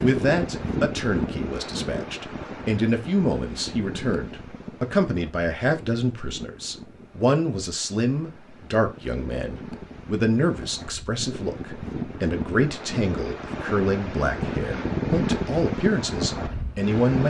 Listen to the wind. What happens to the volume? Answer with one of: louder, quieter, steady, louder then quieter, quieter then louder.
quieter then louder.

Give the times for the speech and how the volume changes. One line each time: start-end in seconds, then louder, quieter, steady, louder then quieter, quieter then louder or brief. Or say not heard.
0.0-17.2 steady.